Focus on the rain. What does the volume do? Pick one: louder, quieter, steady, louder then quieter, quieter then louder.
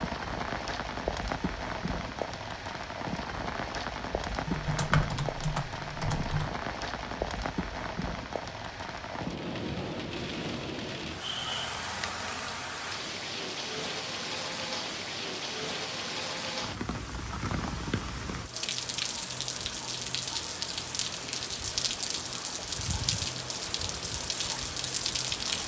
steady.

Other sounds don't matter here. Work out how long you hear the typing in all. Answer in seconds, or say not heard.
2 s.